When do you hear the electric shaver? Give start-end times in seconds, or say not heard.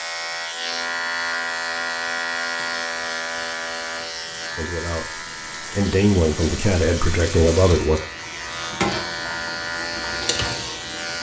0.0-11.1.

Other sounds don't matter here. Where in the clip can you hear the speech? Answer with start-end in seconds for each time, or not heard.
4.5-8.0.